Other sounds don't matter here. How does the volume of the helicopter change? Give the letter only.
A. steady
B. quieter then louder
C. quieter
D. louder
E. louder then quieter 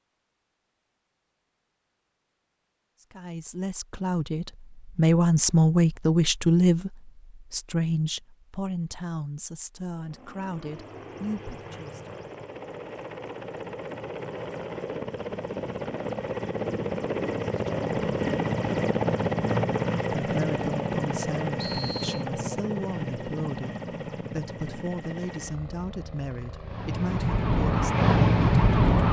E.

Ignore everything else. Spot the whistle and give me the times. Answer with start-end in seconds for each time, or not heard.
21.6-22.2.